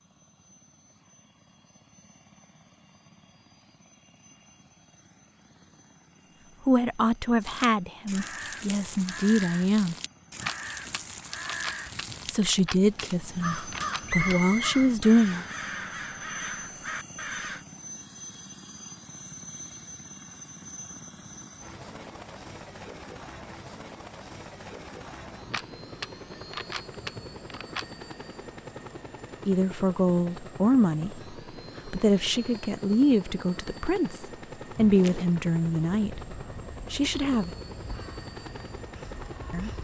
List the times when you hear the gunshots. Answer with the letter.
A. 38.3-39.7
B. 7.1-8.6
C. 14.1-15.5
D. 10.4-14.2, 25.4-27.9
D.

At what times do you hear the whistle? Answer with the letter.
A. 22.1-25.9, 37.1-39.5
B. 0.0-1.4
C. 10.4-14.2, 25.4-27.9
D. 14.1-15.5
D.